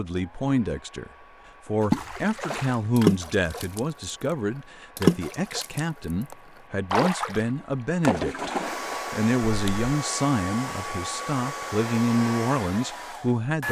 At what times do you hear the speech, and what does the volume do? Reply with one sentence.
You can hear the speech from 0.0 to 13.6 s, at a steady volume.